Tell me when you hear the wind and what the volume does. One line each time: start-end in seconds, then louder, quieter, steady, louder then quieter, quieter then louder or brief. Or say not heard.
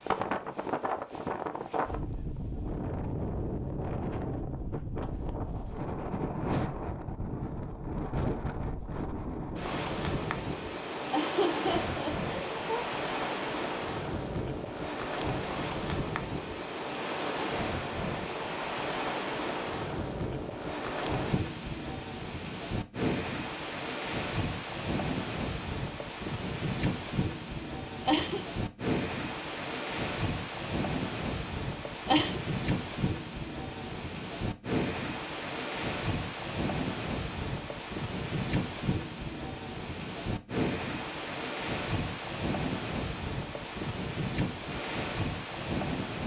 0.0-46.2 steady.